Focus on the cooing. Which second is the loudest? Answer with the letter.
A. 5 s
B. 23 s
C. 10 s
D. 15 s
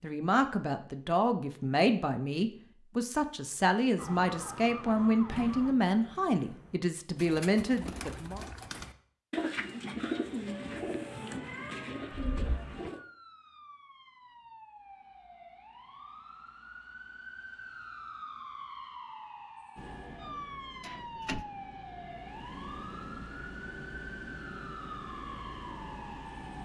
C.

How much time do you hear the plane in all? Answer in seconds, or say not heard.
7 s.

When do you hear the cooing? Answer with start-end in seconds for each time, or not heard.
7.2-13.0.